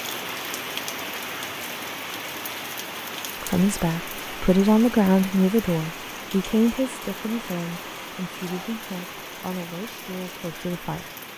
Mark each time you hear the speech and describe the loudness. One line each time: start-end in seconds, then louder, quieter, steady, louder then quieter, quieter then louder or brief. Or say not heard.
3.4-11.1 quieter.